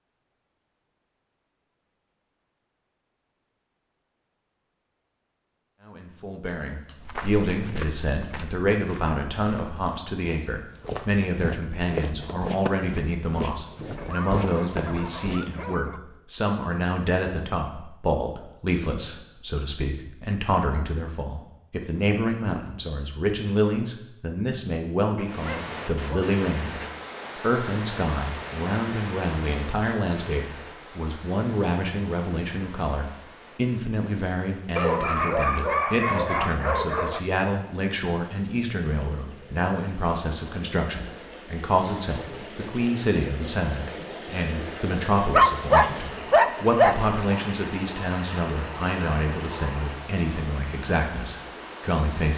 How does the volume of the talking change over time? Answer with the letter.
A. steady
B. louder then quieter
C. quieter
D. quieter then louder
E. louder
A.